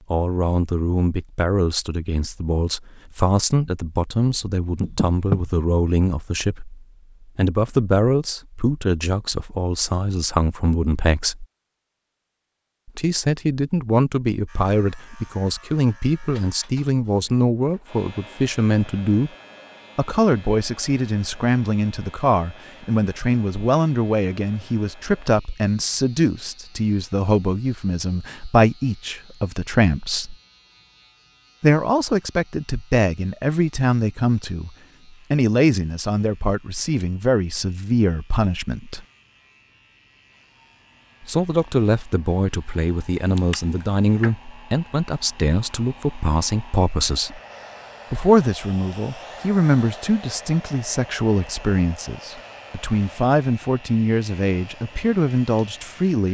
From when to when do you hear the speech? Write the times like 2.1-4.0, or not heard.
0.1-11.4, 12.8-19.3, 19.9-30.4, 31.6-39.0, 41.2-47.4, 48.1-56.2.